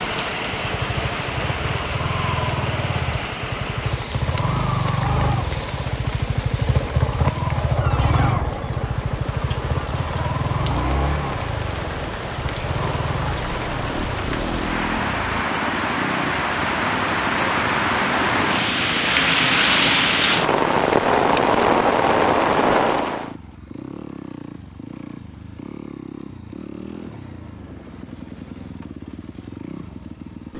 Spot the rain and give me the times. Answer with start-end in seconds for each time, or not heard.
0.0-23.4.